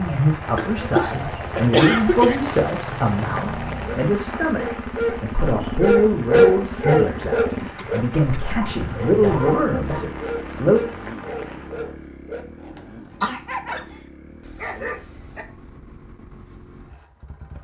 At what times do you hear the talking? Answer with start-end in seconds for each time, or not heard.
0.0-10.8.